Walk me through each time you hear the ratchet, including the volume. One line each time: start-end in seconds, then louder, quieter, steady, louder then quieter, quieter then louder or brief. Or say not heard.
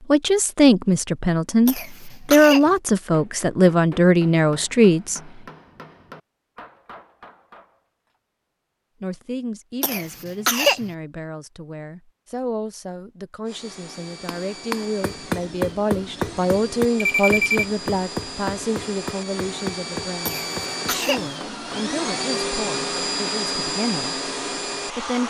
not heard.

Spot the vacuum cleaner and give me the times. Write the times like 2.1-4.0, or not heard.
13.4-25.2.